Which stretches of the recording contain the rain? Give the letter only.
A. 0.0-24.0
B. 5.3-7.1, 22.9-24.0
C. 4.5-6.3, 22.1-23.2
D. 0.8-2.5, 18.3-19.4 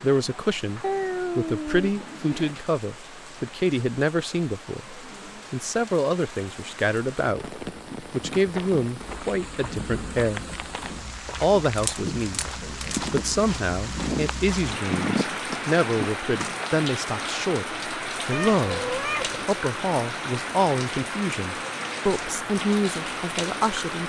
A.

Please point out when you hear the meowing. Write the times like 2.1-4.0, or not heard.
0.8-2.5, 18.3-19.4.